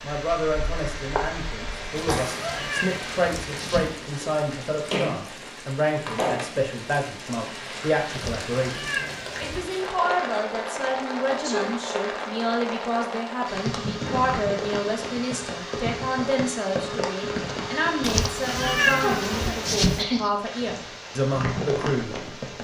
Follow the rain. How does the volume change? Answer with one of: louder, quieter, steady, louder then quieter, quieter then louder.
steady.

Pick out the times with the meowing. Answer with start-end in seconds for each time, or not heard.
1.9-4.0, 8.1-9.7, 18.0-20.1.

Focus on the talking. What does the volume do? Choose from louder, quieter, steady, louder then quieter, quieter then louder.
steady.